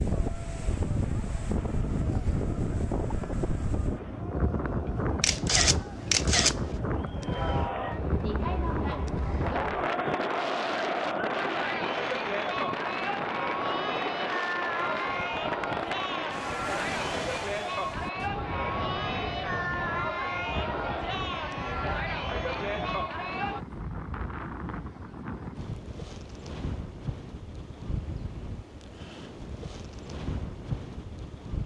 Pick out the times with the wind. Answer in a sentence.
You can hear the wind from 0.0 to 31.6 s.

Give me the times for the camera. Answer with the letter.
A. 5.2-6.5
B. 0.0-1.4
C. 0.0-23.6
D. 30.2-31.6
A.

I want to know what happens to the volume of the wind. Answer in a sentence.
The volume of the wind goes down.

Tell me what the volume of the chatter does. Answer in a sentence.
The volume of the chatter goes up.